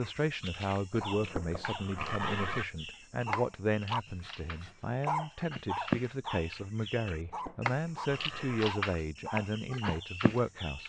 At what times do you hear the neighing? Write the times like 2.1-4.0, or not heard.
1.1-2.6, 7.1-8.8.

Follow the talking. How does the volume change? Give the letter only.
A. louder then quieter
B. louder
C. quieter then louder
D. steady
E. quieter
D.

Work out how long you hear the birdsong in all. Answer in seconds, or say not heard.
11 s.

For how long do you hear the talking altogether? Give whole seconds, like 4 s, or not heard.
11 s.